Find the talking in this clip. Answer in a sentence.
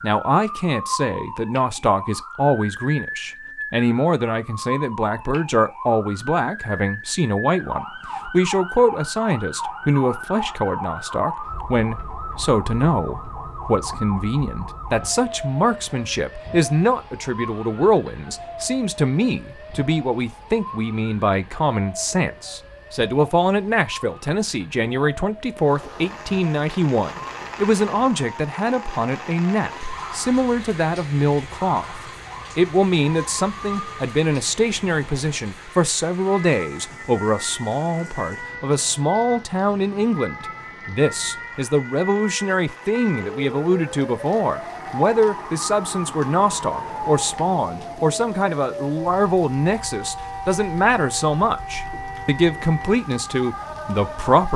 The talking can be heard from 0.0 to 54.5 s.